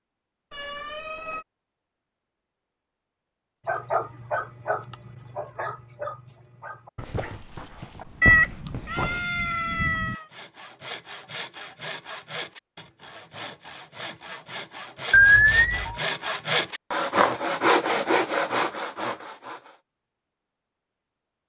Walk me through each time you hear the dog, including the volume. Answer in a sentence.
You can hear the dog from 3.6 to 9.2 s, getting quieter then louder.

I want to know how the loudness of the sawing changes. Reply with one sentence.
The volume of the sawing goes up.